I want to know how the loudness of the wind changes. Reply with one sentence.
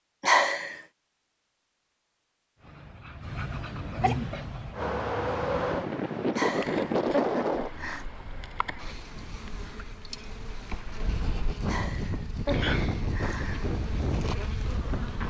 The volume of the wind goes down, then up.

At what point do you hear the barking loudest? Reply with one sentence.
The volume of the barking peaks at 4 seconds.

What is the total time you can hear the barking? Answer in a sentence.
You can hear the barking for 2 seconds altogether.